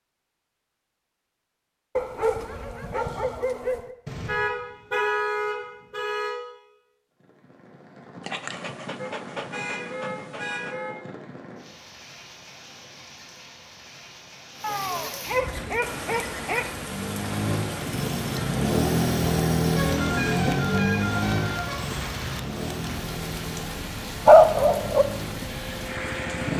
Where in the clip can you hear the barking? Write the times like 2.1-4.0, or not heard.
1.9-4.0, 8.2-10.8, 14.6-16.6, 24.2-25.1.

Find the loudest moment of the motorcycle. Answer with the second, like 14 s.
19 s.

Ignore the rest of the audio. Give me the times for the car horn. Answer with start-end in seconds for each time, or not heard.
4.0-6.3, 8.9-10.9, 19.8-21.8.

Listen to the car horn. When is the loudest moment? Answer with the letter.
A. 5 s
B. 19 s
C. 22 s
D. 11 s
A.